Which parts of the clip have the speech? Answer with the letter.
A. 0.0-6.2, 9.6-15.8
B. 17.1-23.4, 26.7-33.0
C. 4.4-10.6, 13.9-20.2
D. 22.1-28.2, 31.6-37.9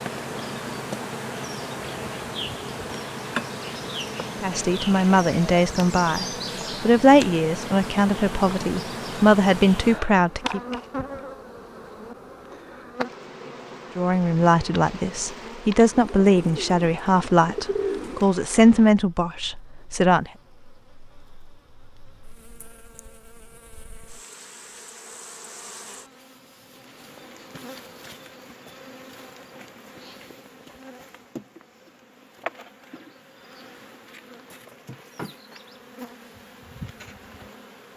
C.